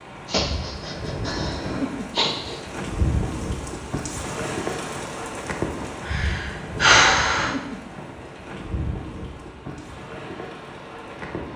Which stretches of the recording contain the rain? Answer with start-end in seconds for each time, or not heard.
0.0-11.5.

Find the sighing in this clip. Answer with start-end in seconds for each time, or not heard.
0.2-2.5, 6.0-7.5.